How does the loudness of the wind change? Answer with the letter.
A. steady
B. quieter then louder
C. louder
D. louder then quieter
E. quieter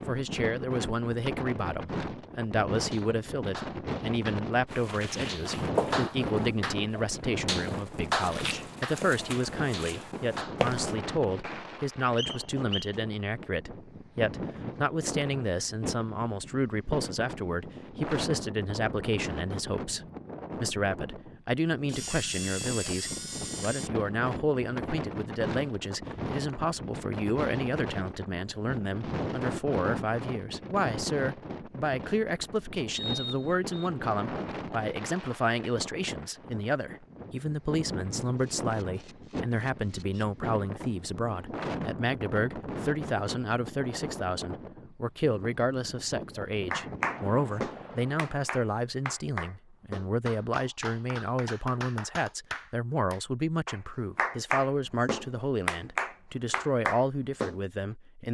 A.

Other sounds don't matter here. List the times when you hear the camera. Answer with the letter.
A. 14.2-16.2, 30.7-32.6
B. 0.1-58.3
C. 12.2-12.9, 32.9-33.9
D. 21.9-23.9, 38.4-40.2
D.